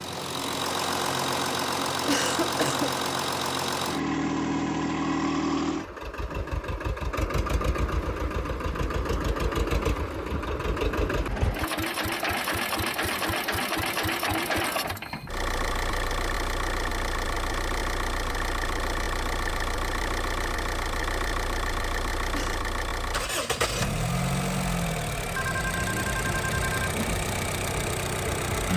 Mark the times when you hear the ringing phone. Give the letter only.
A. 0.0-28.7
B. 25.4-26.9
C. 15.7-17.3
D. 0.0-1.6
B.